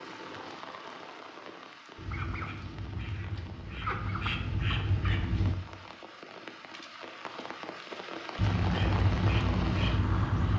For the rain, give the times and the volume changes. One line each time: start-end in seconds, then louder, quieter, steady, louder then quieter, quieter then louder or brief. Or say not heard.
0.0-10.5 quieter then louder.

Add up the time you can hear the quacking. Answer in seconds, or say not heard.
6 s.